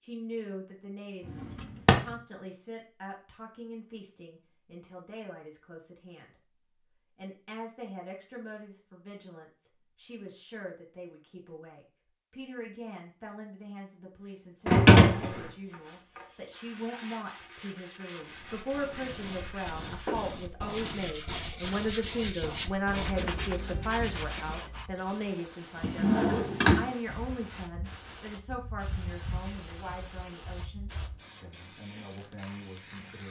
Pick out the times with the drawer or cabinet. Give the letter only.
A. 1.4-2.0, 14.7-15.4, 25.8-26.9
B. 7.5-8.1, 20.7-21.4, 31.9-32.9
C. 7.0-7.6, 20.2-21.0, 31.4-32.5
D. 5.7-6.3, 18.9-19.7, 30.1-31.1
A.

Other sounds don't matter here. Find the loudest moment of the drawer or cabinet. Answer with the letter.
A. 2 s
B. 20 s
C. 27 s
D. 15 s
D.